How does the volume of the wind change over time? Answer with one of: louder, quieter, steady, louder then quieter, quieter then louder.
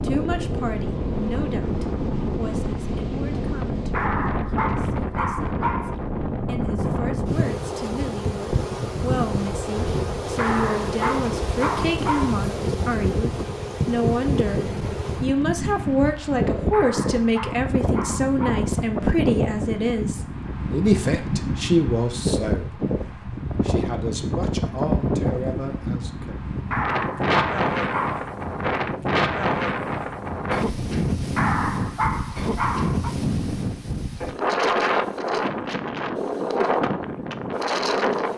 steady.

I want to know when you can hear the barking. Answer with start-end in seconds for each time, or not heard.
3.9-6.0, 10.3-12.3, 16.7-18.8, 26.7-28.2, 31.4-33.1.